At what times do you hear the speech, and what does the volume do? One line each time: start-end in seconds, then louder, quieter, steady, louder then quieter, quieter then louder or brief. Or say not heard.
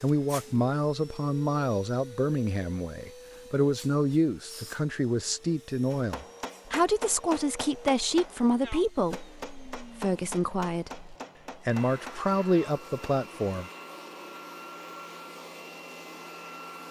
0.0-13.7 steady.